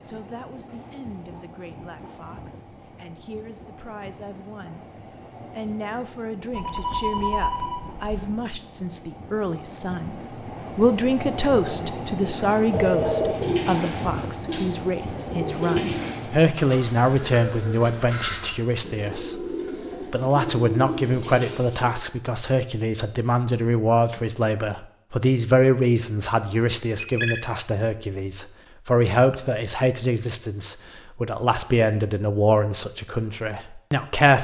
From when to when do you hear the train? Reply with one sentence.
The train can be heard from 0.0 to 16.6 s.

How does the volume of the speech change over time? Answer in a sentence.
The loudness of the speech goes up.